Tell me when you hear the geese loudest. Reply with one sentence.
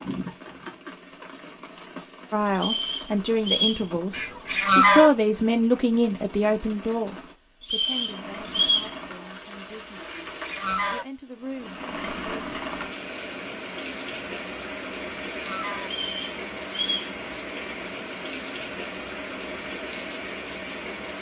The volume of the geese peaks at 5 seconds.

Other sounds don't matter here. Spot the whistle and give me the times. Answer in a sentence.
The whistle can be heard from 2.5 to 3.9 s, from 7.6 to 8.9 s and from 15.8 to 17.1 s.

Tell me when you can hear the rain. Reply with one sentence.
You can hear the rain from 0.0 to 21.1 s.